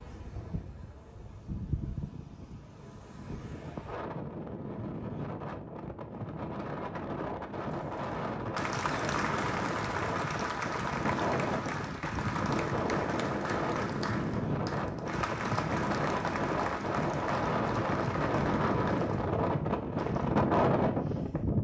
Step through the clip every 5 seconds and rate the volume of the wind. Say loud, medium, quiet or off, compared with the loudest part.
quiet, medium, medium, loud, loud.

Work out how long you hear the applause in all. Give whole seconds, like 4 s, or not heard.
13 s.